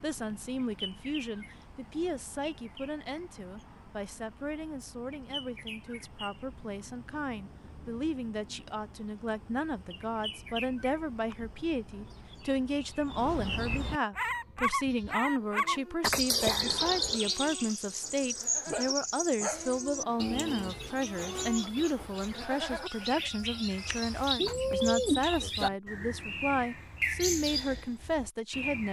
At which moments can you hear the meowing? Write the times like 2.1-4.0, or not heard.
24.4-25.8.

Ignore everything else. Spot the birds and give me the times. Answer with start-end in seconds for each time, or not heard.
0.0-28.8.